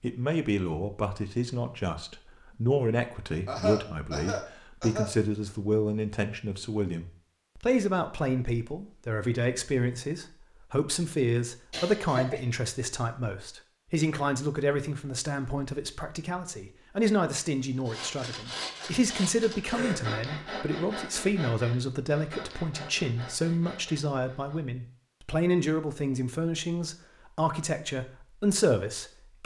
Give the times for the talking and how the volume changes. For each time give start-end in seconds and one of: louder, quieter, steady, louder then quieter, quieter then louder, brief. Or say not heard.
0.0-29.4 steady.